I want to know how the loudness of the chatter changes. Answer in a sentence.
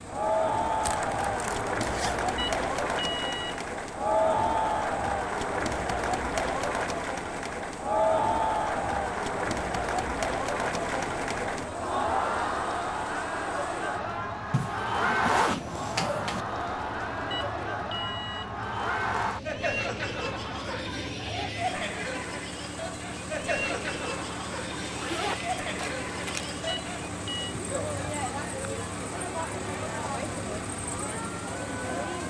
The loudness of the chatter goes down.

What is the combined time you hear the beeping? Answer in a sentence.
You can hear the beeping for 3 seconds altogether.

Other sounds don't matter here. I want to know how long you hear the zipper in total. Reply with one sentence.
You can hear the zipper for 5 seconds altogether.